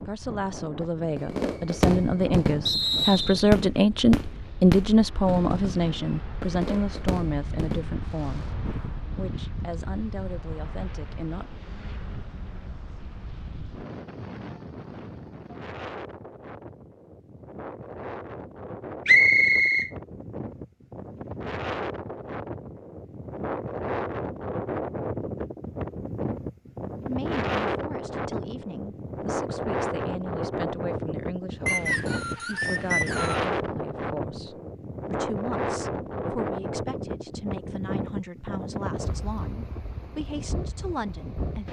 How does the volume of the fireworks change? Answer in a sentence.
The loudness of the fireworks goes down.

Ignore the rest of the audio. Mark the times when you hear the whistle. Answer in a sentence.
The whistle can be heard from 2.6 to 3.5 s, from 19.1 to 19.9 s and from 31.6 to 33.5 s.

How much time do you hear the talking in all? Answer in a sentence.
The talking can be heard for 26 seconds in total.